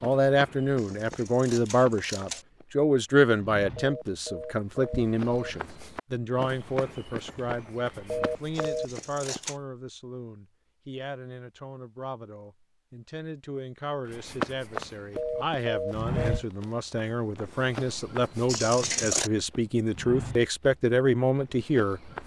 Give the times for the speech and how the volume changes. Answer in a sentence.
The speech can be heard from 0.0 to 22.1 s, getting quieter then louder.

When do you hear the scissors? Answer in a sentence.
The scissors can be heard from 0.8 to 2.5 s, from 8.6 to 9.6 s and from 18.4 to 19.3 s.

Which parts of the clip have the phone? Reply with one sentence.
The phone can be heard from 3.8 to 5.5 s, from 8.1 to 8.9 s and from 15.2 to 16.4 s.